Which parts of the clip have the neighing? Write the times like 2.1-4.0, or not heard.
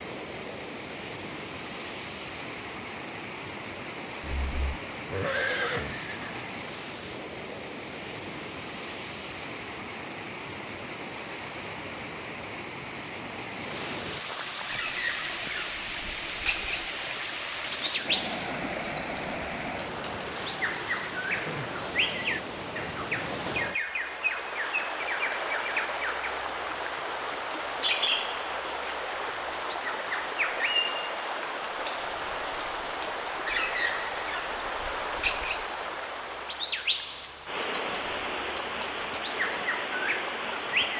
4.2-6.3.